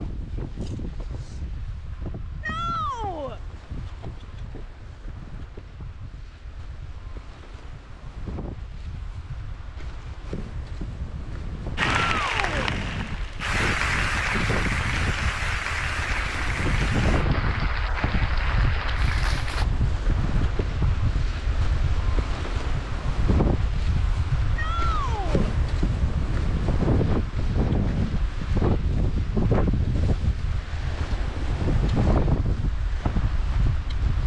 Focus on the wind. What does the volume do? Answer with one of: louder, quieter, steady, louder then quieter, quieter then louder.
louder.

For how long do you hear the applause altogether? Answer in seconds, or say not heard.
8 s.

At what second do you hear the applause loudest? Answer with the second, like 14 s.
14 s.